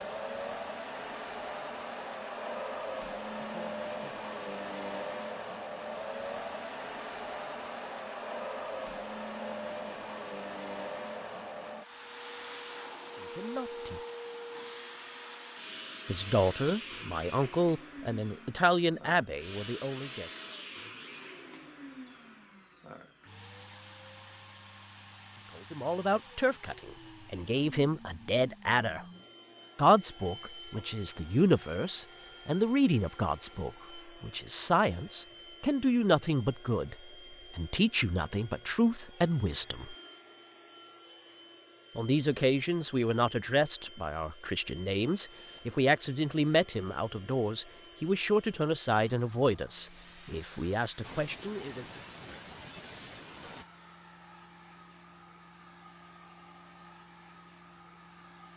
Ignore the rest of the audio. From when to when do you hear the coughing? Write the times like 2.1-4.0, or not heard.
3.4-4.2, 51.0-53.6.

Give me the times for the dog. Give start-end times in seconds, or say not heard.
not heard.